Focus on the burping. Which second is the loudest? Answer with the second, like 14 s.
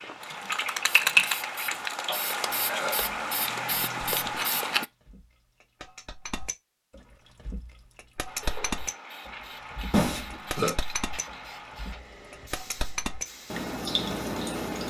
10 s.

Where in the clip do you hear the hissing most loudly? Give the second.
1 s.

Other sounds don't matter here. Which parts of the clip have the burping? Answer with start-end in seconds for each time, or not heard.
2.0-3.0, 9.9-10.8.